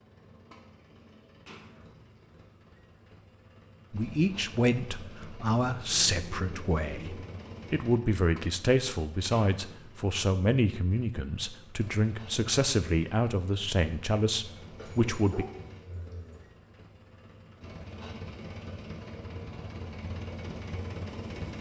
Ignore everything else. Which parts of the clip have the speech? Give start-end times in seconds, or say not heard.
3.9-15.4.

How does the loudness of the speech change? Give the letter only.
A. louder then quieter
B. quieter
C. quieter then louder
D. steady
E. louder
D.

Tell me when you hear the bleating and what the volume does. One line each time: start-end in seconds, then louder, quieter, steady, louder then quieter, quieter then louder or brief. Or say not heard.
not heard.